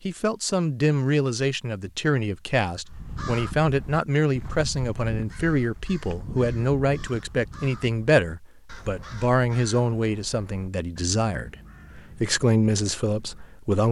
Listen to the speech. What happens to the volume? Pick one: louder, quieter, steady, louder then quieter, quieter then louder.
steady.